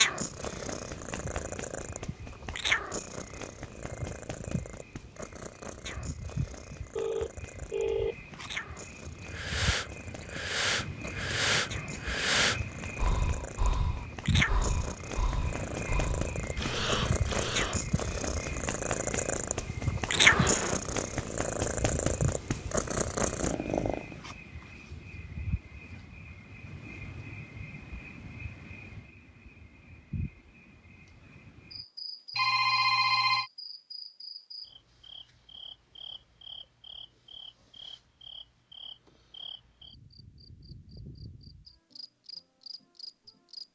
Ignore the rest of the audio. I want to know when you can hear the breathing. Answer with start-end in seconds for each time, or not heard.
9.2-17.8.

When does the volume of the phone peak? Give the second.
33 s.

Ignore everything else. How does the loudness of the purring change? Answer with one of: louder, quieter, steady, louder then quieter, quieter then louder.
quieter then louder.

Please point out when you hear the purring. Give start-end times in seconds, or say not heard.
0.0-24.2.